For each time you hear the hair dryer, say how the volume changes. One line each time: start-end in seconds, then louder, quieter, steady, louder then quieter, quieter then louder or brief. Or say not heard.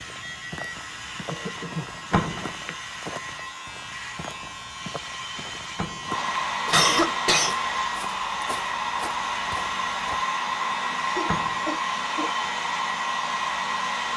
0.2-14.1 louder.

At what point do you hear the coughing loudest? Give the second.
7 s.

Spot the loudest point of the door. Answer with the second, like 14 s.
2 s.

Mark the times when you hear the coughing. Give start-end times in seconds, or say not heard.
1.2-2.8, 6.7-7.5, 10.9-12.3.